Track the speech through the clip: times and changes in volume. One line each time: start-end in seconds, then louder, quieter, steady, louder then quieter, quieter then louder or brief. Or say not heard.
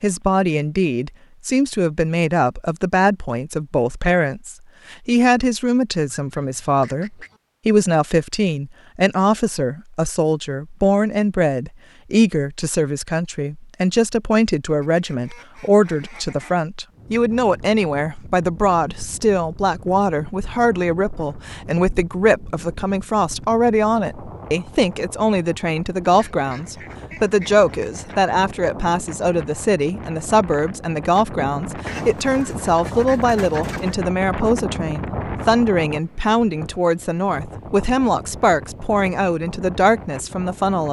0.0-40.8 steady.